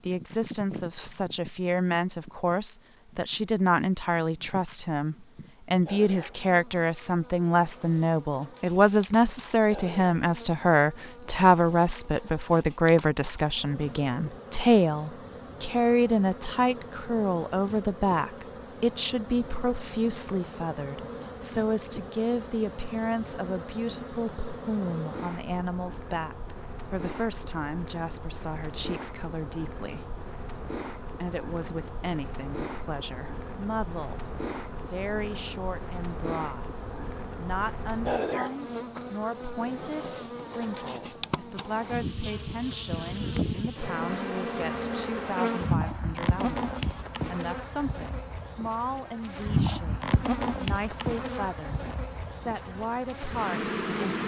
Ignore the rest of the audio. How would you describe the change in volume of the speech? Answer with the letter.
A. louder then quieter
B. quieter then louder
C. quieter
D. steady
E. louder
C.